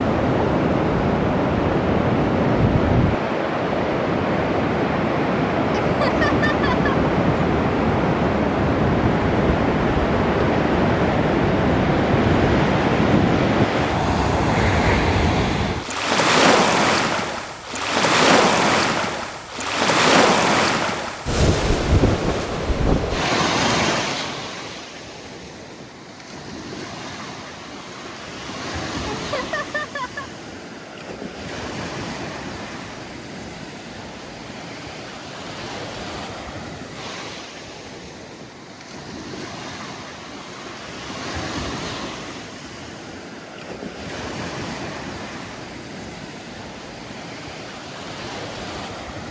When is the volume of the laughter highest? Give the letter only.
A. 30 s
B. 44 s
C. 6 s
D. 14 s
C.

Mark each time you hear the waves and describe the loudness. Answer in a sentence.
The waves can be heard from 0.0 to 49.2 s, getting quieter.